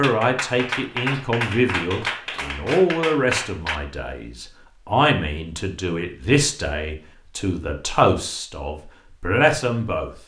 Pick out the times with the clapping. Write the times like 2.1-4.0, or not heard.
0.0-3.8.